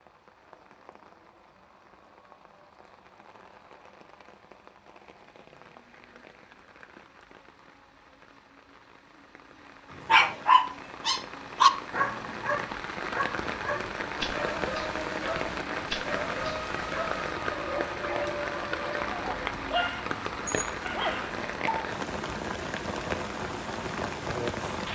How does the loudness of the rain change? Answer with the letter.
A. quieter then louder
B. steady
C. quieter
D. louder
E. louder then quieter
D.